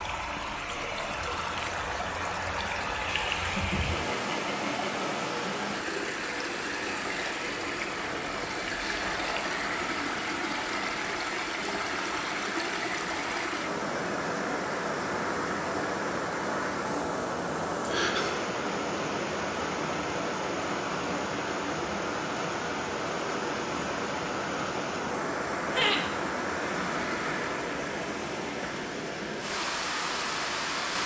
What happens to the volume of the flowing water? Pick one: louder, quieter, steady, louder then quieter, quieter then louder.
steady.